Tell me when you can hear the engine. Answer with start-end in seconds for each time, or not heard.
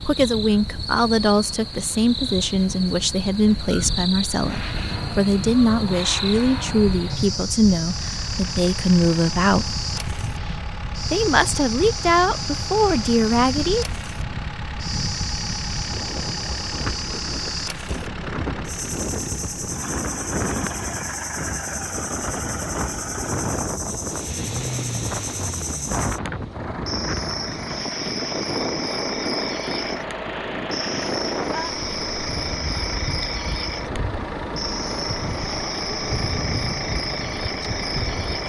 4.3-38.4.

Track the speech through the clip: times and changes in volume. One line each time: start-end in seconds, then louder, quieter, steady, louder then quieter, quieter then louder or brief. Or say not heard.
0.0-9.8 steady
11.1-13.8 brief.